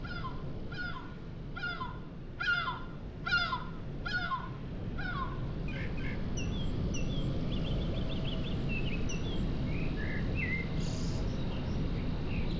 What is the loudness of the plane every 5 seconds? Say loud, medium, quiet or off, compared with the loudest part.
medium, loud, loud.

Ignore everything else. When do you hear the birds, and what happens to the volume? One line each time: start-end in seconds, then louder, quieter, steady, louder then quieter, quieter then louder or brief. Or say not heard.
0.0-12.5 quieter.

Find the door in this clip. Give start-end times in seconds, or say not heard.
not heard.